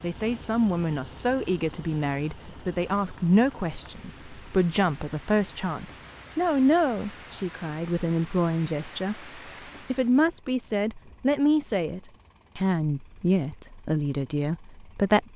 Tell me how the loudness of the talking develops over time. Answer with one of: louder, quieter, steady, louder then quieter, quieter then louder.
steady.